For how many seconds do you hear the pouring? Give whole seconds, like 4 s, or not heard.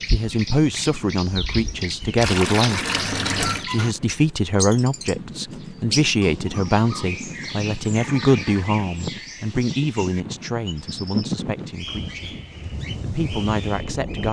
3 s.